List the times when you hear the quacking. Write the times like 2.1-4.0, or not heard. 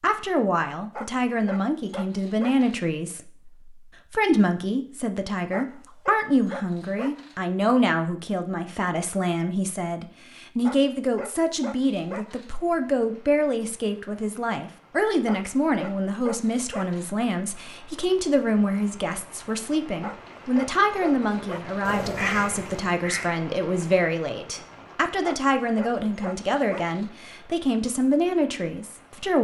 21.9-23.3.